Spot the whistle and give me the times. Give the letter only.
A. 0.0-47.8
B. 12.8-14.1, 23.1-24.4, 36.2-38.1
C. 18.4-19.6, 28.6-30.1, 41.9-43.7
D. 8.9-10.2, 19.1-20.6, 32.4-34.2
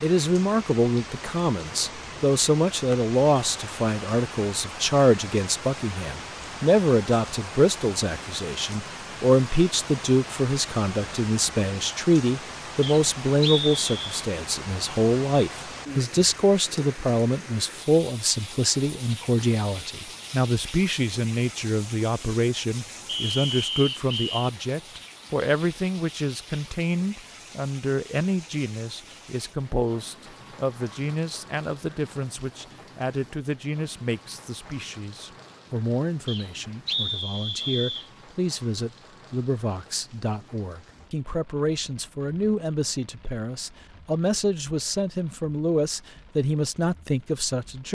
B.